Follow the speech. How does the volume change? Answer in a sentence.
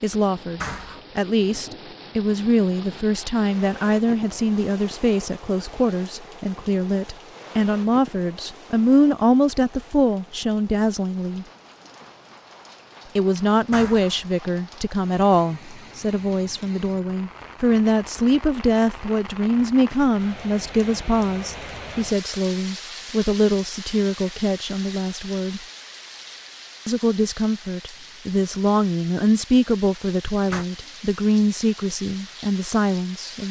The volume of the speech stays about the same.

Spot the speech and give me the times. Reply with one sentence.
The speech can be heard from 0.0 to 11.4 s, from 13.2 to 25.6 s and from 26.9 to 33.4 s.